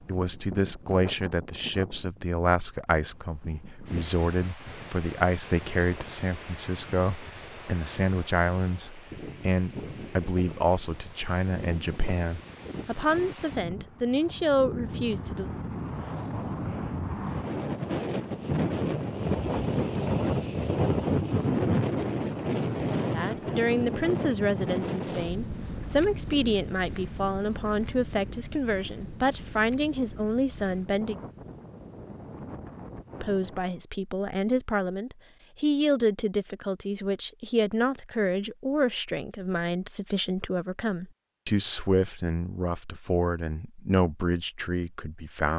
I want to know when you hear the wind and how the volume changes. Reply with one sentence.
The wind can be heard from 0.0 to 33.9 s, getting louder then quieter.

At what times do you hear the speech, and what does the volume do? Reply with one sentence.
You can hear the speech from 0.1 to 15.5 s, at a steady volume; from 23.1 to 31.1 s, at a steady volume; and from 33.2 to 45.5 s, at a steady volume.